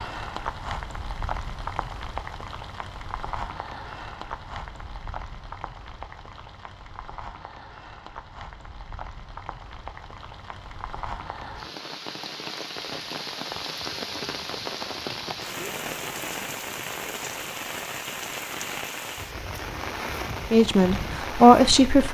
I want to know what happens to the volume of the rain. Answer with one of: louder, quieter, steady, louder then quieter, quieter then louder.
quieter then louder.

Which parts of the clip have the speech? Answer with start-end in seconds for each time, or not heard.
20.5-22.0.